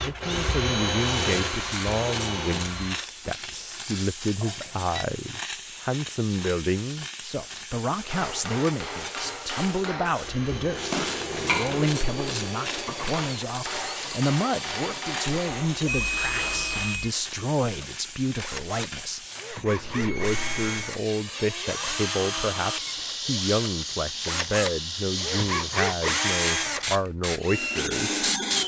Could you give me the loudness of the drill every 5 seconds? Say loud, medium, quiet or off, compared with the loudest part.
loud, off, medium, medium, medium, loud.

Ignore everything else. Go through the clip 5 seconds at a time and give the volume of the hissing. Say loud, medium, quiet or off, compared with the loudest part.
medium, medium, medium, medium, loud, loud.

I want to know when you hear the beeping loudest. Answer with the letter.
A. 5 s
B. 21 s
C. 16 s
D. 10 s
C.